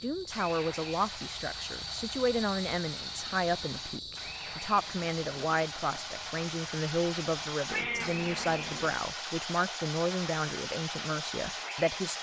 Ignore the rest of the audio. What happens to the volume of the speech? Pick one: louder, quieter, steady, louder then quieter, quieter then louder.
steady.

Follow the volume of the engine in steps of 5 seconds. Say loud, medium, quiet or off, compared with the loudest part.
medium, loud, loud.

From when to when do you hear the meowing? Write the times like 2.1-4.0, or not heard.
7.7-8.9.